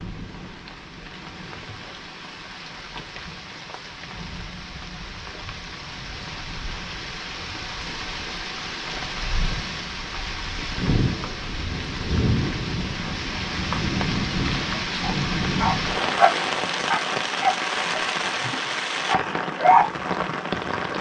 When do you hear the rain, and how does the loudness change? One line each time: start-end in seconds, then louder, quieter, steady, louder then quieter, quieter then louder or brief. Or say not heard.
0.0-20.9 louder.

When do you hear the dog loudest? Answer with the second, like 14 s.
20 s.